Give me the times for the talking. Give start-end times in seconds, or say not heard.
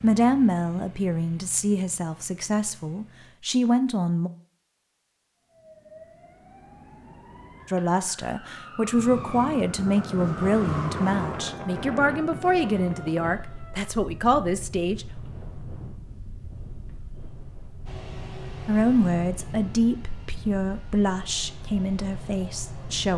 0.0-4.3, 7.7-15.1, 18.6-23.1.